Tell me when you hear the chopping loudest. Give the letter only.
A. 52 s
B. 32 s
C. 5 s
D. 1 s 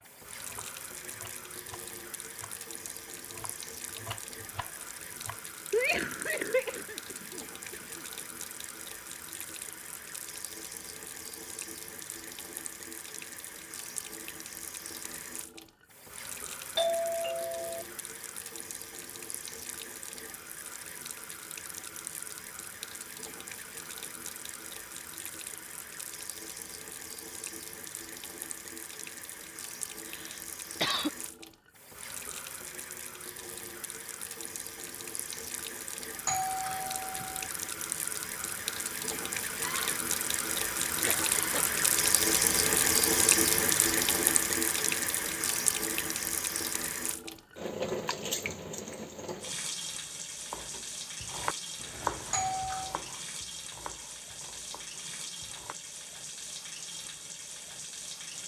A.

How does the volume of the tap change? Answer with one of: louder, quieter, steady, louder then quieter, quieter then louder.
louder then quieter.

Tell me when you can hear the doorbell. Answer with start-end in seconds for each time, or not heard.
16.8-17.9, 36.2-37.5, 52.3-53.0.